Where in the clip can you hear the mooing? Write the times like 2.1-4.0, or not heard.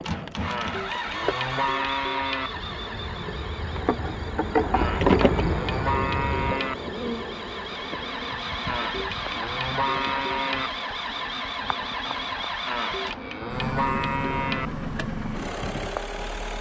0.5-2.5, 4.8-6.8, 8.7-10.7, 12.7-14.7.